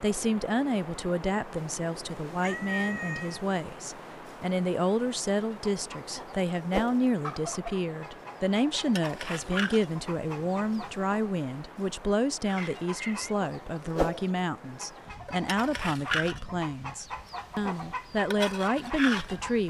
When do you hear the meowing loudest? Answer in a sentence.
The loudest moment of the meowing is at 3 seconds.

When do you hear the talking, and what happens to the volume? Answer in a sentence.
You can hear the talking from 0.0 to 19.6 s, at a steady volume.